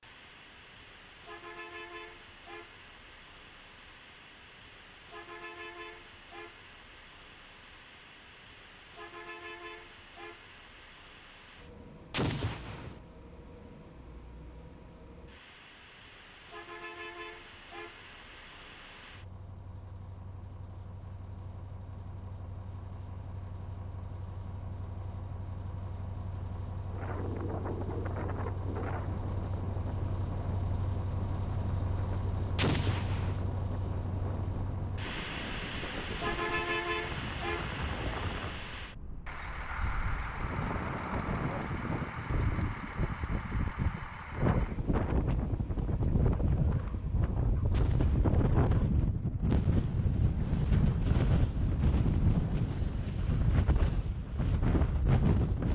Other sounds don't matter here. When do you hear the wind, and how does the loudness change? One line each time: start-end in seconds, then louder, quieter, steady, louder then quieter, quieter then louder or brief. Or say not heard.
26.9-55.7 louder.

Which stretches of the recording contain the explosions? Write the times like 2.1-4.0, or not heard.
12.1-13.0, 32.5-33.5, 47.7-48.5.